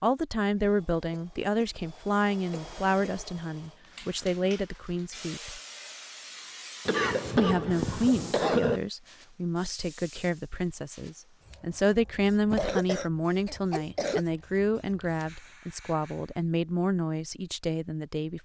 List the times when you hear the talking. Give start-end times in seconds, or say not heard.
0.0-5.6, 7.3-18.3.